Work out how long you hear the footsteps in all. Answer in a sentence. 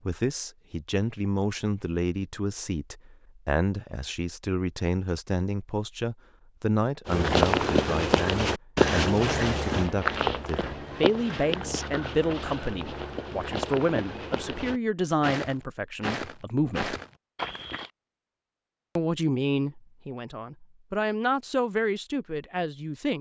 You can hear the footsteps for 11 seconds altogether.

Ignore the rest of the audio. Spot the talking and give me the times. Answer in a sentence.
The talking can be heard from 0.1 to 16.9 s and from 18.9 to 23.1 s.